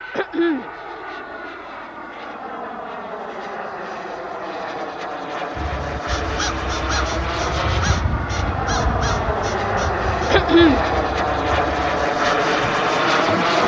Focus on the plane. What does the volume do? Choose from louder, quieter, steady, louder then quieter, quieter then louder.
louder.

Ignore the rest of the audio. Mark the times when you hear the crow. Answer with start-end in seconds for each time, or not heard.
5.5-13.6.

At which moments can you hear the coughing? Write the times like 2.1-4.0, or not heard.
0.1-0.7, 10.3-10.8.